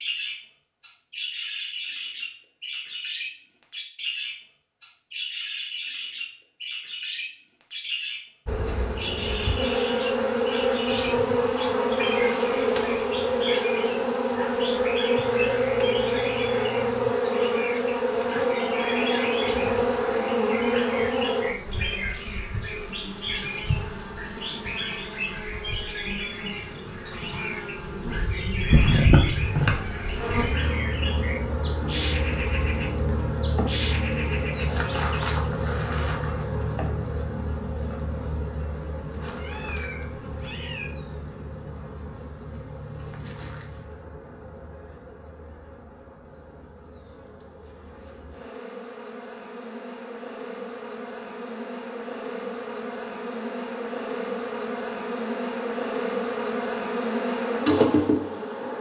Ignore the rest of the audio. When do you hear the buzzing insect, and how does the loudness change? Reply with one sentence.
You can hear the buzzing insect from 8.4 to 58.7 s, getting quieter then louder.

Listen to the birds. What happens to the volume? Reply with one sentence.
The loudness of the birds stays about the same.